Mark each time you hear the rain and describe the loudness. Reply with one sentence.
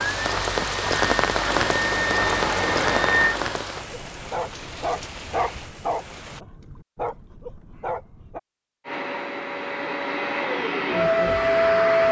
You can hear the rain from 0.0 to 6.4 s, getting quieter.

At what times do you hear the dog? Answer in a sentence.
The dog can be heard from 4.1 to 8.4 s.